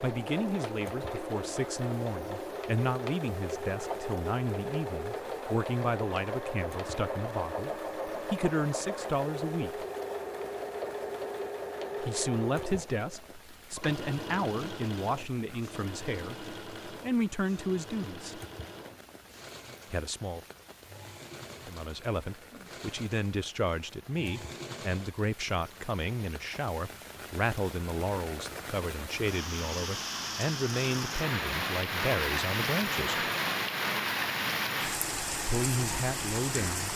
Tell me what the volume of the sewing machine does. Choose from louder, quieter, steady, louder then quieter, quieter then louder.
quieter.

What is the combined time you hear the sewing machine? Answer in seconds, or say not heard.
25 s.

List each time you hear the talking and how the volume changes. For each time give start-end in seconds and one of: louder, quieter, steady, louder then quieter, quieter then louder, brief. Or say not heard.
0.0-9.8 steady
12.0-18.4 quieter then louder
19.9-20.4 brief
21.6-33.2 steady
35.4-36.9 brief.